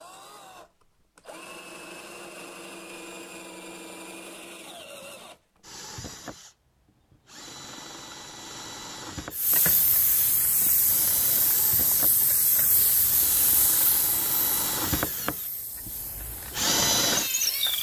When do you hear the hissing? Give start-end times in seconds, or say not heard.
9.3-17.7.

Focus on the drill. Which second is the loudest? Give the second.
17 s.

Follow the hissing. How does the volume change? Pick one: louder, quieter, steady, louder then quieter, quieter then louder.
quieter.